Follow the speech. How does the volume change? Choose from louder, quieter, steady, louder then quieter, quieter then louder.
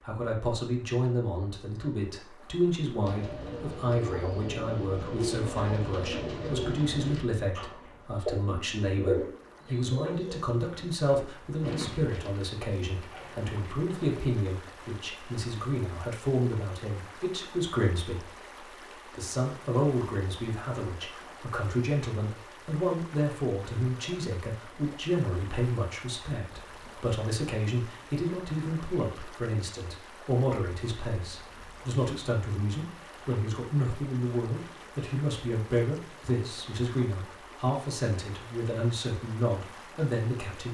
steady.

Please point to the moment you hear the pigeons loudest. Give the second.
9 s.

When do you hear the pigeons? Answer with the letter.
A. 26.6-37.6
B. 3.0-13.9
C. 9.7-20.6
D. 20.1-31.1
B.